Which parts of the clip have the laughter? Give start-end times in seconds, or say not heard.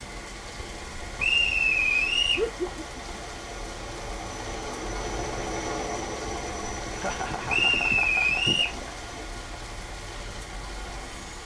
2.4-3.2, 6.8-9.1.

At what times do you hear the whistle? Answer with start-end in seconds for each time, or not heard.
1.1-2.5, 7.5-8.8.